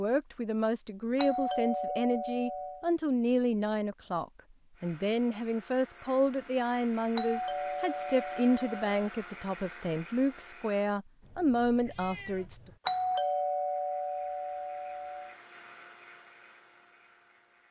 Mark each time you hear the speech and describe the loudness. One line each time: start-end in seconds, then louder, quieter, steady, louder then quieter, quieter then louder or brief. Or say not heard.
0.0-12.6 steady.